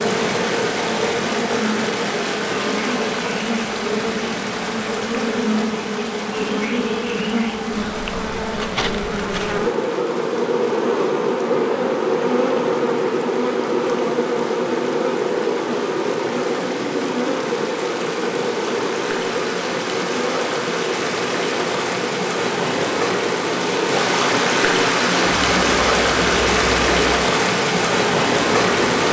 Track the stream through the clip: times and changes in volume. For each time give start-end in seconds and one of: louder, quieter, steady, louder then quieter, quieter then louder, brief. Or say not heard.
0.0-29.0 quieter then louder.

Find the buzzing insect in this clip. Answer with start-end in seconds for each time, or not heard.
0.0-29.0.